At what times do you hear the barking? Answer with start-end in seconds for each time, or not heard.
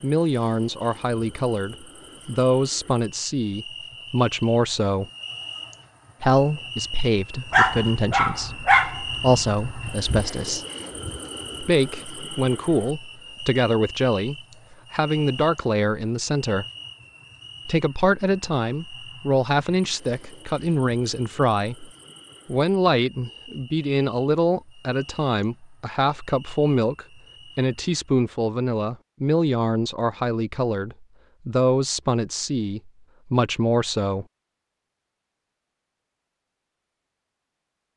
7.5-10.2.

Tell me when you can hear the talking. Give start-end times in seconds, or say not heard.
0.0-5.0, 6.2-10.7, 11.6-16.6, 17.6-34.2.